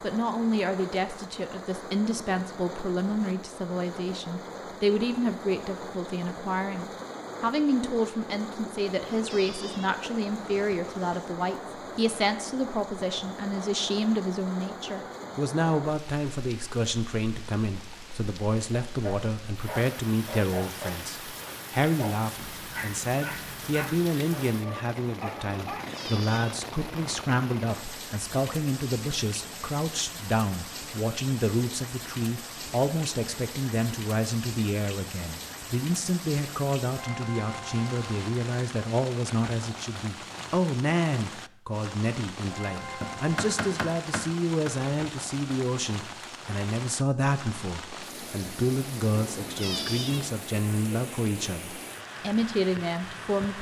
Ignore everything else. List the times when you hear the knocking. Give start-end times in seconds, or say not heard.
43.0-44.7.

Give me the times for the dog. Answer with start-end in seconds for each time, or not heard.
18.7-26.1.